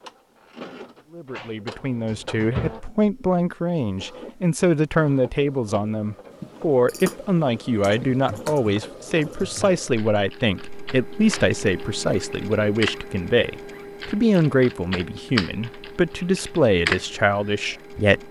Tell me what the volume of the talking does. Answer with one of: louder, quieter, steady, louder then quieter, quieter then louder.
steady.